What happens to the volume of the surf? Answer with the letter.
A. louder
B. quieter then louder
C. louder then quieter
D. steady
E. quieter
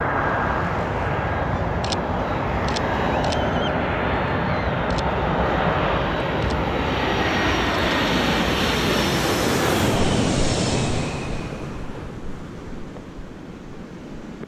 C.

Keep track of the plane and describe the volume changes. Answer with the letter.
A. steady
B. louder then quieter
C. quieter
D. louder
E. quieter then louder
A.